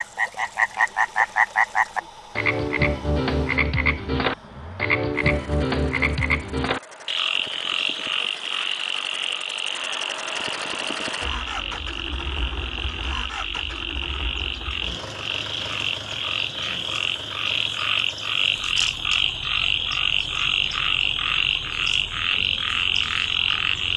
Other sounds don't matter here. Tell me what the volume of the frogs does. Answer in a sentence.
The volume of the frogs goes down, then up.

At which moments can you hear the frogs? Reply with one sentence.
The frogs can be heard from 0.0 to 23.9 s.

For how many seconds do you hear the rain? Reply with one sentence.
You can't hear the rain here.